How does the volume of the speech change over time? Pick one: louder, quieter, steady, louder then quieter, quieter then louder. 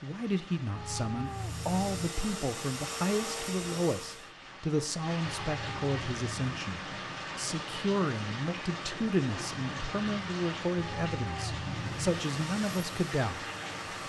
steady.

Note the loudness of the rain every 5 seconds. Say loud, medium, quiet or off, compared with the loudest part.
medium, loud, loud.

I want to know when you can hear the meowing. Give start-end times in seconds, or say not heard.
0.8-2.1, 5.2-6.5, 10.8-12.2.